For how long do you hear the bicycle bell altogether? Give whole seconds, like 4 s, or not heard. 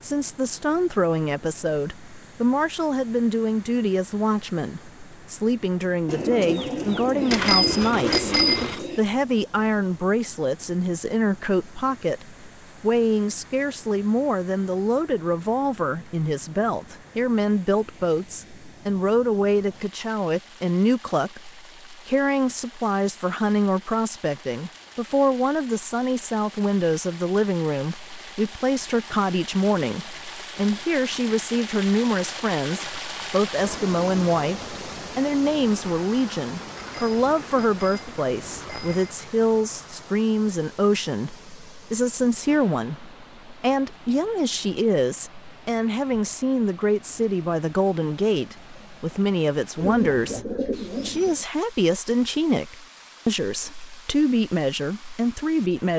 4 s.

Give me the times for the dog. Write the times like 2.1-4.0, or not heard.
not heard.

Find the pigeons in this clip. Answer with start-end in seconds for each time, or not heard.
6.0-9.1, 49.8-51.5.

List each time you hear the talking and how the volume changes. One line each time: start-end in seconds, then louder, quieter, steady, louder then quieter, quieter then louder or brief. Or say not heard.
0.0-55.9 steady.